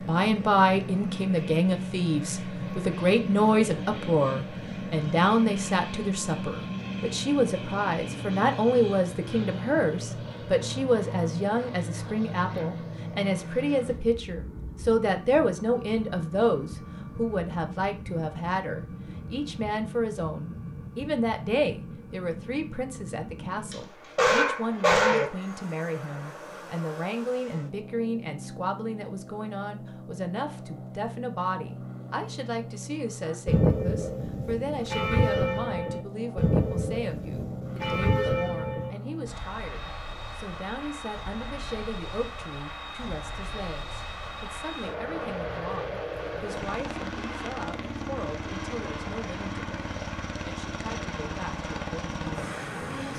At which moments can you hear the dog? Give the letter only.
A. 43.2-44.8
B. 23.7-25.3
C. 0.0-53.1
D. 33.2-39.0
B.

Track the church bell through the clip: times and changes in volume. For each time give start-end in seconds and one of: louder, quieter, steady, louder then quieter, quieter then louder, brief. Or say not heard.
33.2-39.0 steady.